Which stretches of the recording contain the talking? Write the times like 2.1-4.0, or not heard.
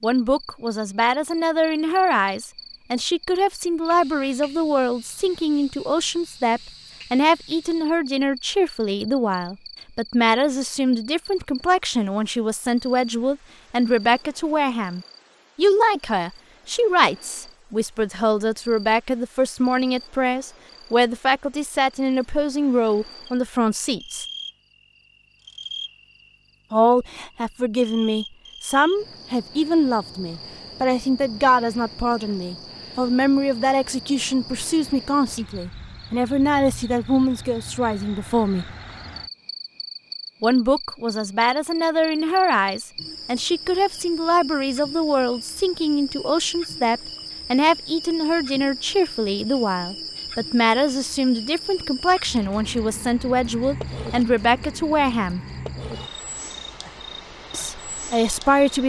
0.0-24.2, 26.7-38.7, 40.4-55.4, 57.5-58.8.